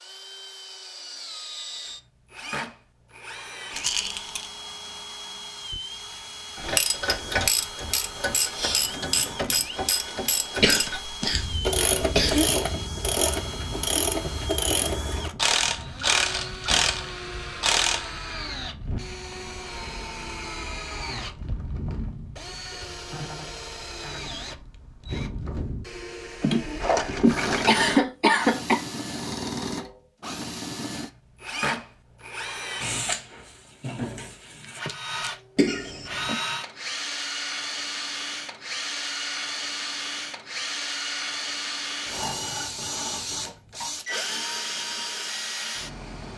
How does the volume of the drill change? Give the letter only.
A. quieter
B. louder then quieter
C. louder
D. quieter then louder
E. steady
C.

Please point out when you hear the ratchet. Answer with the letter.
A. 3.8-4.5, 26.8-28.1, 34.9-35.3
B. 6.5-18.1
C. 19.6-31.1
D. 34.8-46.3
B.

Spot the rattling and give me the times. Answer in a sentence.
You can hear the rattling from 3.8 to 4.5 s, from 26.8 to 28.1 s and from 34.9 to 35.3 s.